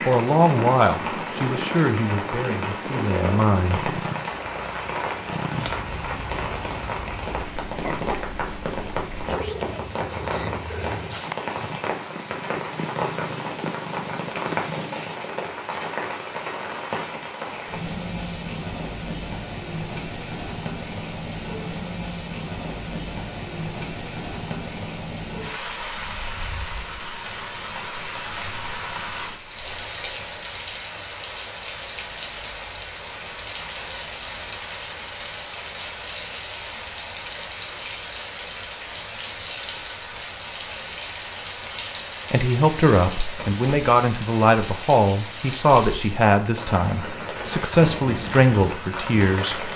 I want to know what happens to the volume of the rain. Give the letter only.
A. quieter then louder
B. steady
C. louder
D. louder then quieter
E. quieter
B.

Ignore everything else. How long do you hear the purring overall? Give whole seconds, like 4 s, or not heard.
15 s.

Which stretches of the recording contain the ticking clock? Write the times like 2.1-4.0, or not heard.
not heard.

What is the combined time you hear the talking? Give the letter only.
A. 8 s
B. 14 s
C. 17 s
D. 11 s
D.